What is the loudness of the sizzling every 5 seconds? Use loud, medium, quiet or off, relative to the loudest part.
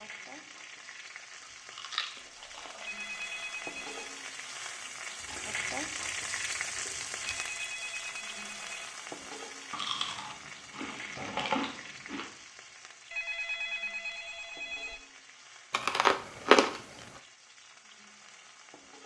medium, loud, medium, quiet.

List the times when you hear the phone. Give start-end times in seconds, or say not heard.
2.8-4.2, 7.2-8.8, 13.1-15.1.